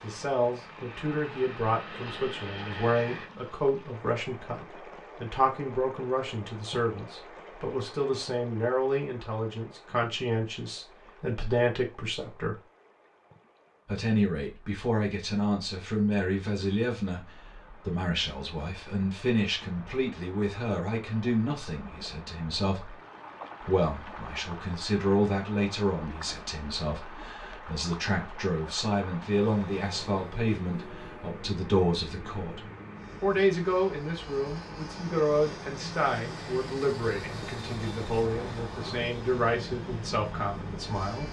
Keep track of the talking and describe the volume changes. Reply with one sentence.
The volume of the talking stays about the same.